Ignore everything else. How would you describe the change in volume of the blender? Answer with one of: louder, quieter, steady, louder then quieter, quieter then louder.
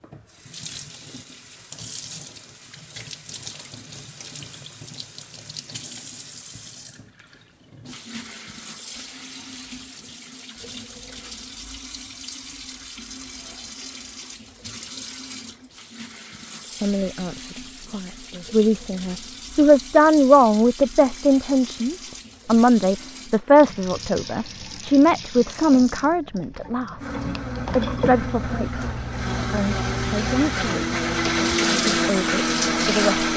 louder.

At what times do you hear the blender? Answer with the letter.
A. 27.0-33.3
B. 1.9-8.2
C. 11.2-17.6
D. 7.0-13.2
A.